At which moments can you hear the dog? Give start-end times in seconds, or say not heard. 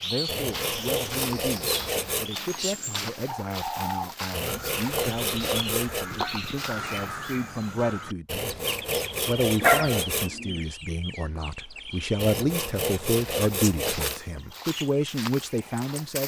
9.6-10.7.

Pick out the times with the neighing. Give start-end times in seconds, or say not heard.
not heard.